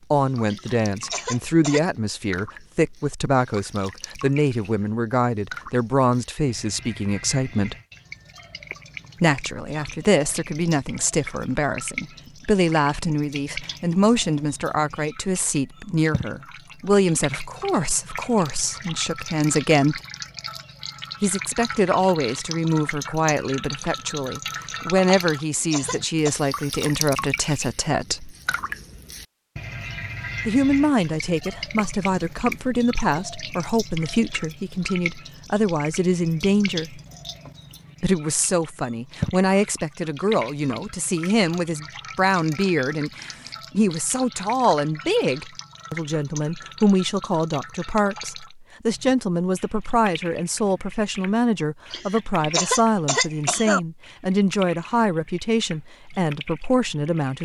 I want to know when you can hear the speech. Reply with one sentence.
You can hear the speech from 0.1 to 7.8 s, from 9.2 to 20.0 s, from 21.2 to 28.4 s, from 30.4 to 37.0 s and from 38.0 to 57.4 s.